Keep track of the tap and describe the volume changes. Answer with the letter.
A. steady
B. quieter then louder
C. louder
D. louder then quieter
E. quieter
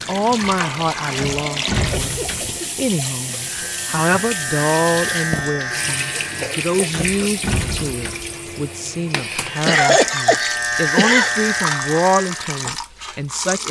A.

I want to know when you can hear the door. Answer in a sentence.
You can hear the door from 1.1 to 2.6 s and from 6.9 to 8.3 s.